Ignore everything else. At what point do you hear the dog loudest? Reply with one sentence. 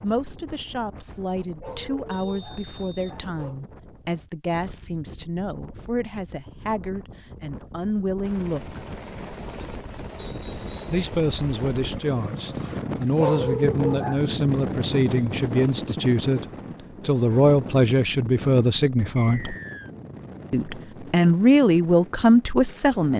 The volume of the dog peaks at 13 seconds.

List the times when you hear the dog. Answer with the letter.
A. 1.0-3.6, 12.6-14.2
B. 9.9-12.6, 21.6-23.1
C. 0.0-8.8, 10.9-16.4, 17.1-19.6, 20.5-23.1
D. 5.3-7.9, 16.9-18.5
A.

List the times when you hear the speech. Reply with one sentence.
You can hear the speech from 0.0 to 8.8 s, from 10.9 to 16.4 s, from 17.1 to 19.6 s and from 20.5 to 23.1 s.